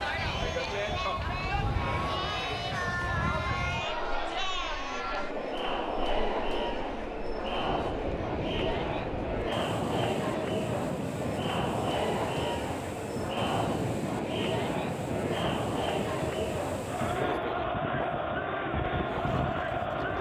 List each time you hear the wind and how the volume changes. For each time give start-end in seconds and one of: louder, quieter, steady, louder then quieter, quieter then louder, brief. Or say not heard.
0.0-20.1 quieter then louder.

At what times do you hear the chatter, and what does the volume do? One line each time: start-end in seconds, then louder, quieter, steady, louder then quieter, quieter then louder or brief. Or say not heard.
0.0-20.1 steady.